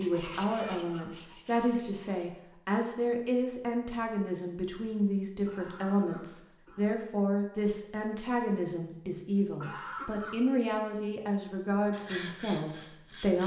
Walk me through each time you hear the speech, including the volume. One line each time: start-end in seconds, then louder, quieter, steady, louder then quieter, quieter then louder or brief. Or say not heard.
0.0-13.4 steady.